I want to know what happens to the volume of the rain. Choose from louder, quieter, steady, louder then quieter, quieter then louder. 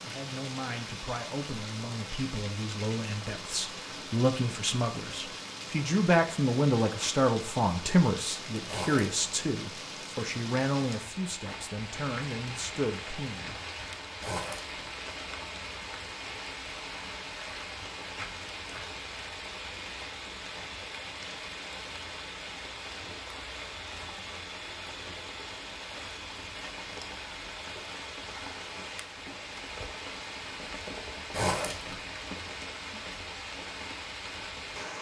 steady.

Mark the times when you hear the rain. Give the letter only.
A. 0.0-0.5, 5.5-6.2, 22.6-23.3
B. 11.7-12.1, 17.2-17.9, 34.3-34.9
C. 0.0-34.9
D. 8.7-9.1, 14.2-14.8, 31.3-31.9
C.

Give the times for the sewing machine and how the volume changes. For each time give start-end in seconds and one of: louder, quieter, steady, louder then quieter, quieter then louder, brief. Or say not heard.
not heard.